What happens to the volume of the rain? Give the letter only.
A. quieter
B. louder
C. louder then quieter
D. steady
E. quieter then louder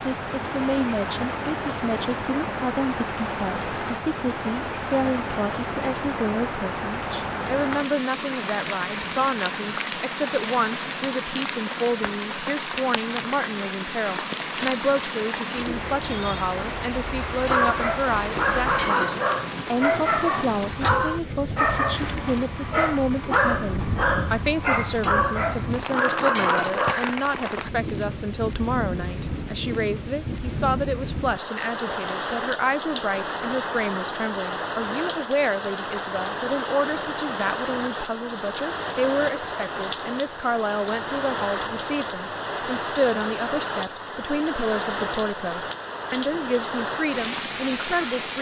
D.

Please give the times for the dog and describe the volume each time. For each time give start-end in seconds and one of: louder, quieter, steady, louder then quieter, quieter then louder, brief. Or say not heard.
17.3-27.1 steady.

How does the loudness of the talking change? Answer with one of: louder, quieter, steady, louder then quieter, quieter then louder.
steady.